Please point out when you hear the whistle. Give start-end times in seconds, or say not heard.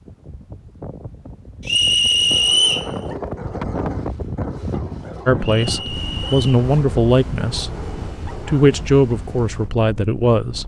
1.6-2.9, 5.4-6.5.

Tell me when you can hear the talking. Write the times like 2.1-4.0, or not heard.
5.2-10.6.